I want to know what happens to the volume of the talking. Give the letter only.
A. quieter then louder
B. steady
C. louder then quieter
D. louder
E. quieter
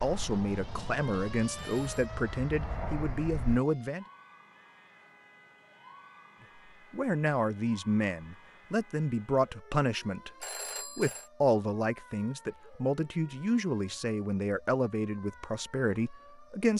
B.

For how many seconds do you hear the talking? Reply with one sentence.
The talking can be heard for 14 seconds in total.